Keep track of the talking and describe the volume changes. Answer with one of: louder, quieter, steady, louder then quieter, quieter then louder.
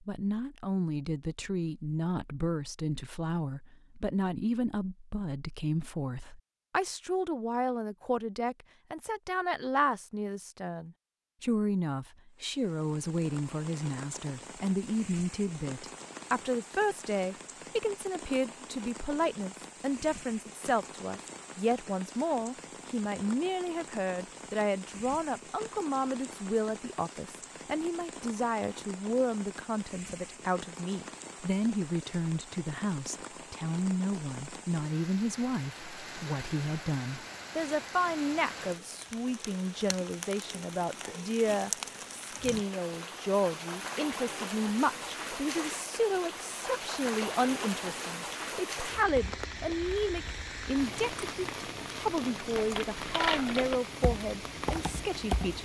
steady.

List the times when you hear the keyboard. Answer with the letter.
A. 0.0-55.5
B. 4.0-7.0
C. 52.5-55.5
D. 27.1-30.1
C.